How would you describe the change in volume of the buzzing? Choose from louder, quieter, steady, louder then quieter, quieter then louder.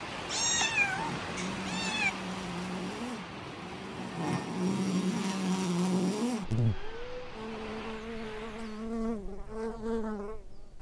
louder then quieter.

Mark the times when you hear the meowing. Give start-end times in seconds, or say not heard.
0.2-2.1, 6.7-7.3.